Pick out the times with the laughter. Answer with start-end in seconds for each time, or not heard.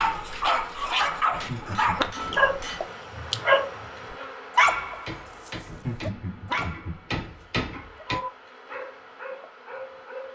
1.3-2.1, 5.7-7.2.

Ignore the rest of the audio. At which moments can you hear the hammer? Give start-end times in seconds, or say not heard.
0.0-2.9, 4.6-8.2.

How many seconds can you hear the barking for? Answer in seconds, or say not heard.
10 s.